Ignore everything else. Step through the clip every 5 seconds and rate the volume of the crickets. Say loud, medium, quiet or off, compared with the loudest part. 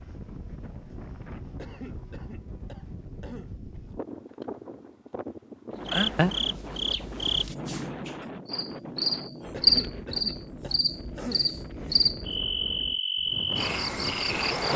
off, loud, loud.